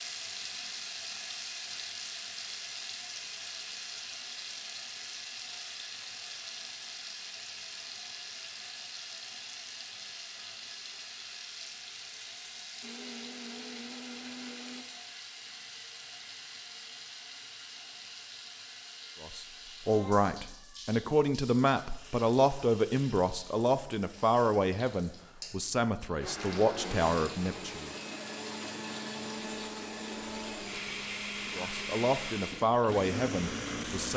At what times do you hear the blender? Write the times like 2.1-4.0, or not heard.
12.8-14.8, 26.2-34.1.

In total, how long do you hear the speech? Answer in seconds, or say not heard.
11 s.